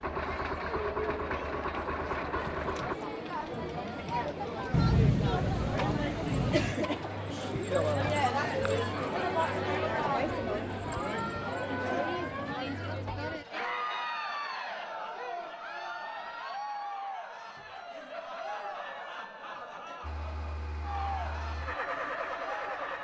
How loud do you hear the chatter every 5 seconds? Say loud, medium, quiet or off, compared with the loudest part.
medium, loud, loud, medium, medium.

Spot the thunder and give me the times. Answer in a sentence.
The thunder can be heard from 4.7 to 6.8 s.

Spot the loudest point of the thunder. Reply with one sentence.
The volume of the thunder peaks at 5 seconds.